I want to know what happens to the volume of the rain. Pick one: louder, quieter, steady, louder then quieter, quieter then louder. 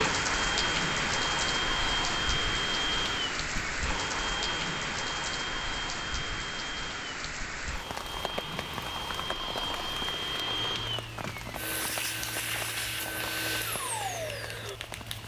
quieter.